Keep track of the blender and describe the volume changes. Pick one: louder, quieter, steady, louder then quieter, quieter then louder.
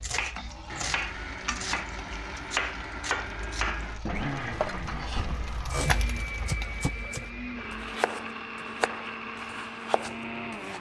steady.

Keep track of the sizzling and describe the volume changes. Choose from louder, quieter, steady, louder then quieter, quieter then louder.
quieter then louder.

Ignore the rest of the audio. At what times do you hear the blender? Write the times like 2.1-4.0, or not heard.
0.0-10.7.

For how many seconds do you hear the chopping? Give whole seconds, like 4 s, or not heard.
11 s.